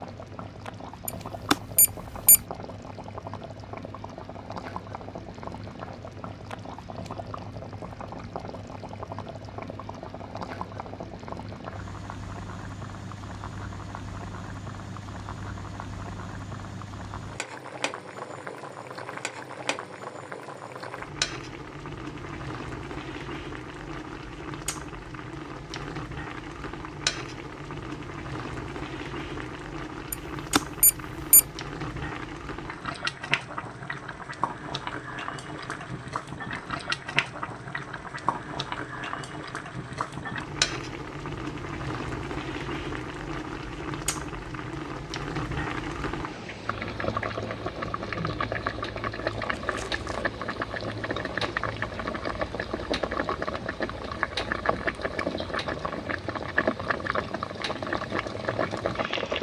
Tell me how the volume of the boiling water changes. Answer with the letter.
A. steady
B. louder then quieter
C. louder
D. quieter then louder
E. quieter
C.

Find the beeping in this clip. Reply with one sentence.
You can hear the beeping from 1.1 to 2.4 s and from 30.1 to 31.4 s.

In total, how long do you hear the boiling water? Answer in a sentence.
The boiling water can be heard for 59 seconds in total.